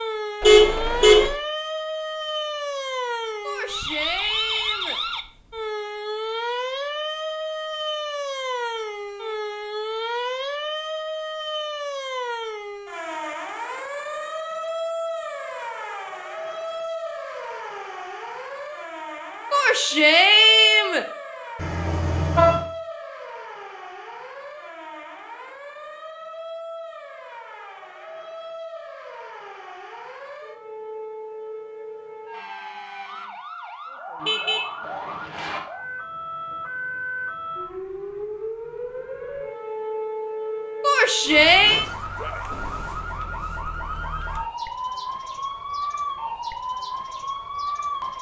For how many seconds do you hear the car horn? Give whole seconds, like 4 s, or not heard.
3 s.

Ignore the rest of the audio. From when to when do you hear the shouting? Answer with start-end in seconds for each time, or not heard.
3.5-5.0, 19.5-21.1, 40.8-41.9.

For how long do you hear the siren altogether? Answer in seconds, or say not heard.
48 s.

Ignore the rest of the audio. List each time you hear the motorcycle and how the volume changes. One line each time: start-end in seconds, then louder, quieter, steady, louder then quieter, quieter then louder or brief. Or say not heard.
not heard.